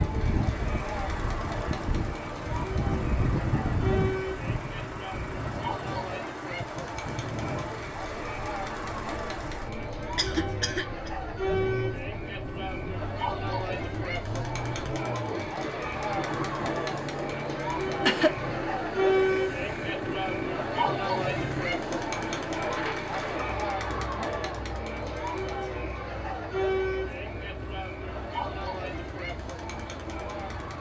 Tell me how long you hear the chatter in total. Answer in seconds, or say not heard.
31 s.